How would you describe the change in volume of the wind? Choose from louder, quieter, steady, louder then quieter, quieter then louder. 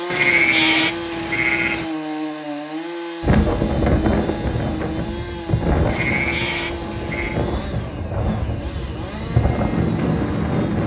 quieter then louder.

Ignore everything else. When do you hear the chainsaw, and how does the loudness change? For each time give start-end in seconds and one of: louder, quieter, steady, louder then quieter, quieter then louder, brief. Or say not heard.
0.0-10.8 quieter.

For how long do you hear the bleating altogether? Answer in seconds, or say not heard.
3 s.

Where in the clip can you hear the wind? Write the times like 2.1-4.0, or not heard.
3.2-10.8.